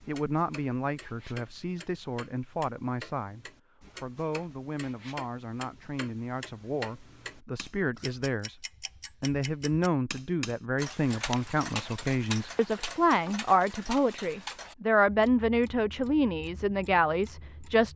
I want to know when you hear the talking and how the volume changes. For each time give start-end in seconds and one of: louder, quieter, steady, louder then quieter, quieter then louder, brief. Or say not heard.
0.1-17.9 louder.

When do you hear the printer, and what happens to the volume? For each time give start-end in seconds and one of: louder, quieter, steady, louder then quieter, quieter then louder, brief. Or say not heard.
not heard.